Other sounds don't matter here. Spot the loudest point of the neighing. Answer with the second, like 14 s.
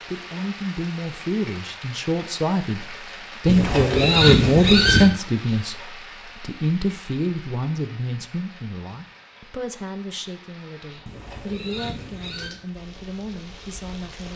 4 s.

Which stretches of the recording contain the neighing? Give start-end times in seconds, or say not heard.
3.5-5.1, 11.1-12.6.